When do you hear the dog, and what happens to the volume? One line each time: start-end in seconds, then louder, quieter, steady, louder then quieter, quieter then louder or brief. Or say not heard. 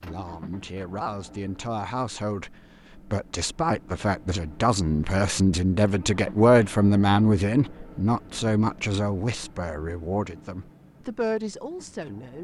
not heard.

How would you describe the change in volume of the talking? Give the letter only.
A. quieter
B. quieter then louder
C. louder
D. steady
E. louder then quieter
E.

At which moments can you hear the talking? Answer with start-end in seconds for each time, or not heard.
0.0-12.3.